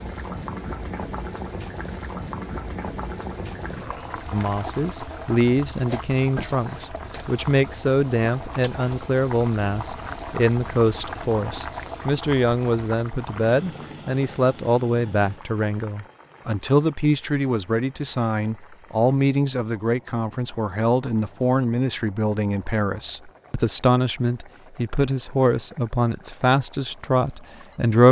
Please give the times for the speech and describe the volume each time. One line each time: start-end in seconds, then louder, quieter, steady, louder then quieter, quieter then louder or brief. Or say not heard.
4.3-28.0 steady.